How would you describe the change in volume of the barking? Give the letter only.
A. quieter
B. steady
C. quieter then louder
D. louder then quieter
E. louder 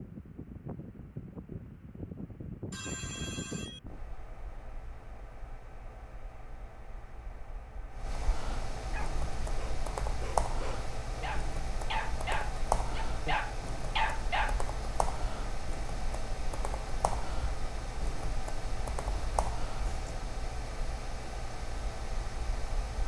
E.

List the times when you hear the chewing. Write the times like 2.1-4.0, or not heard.
not heard.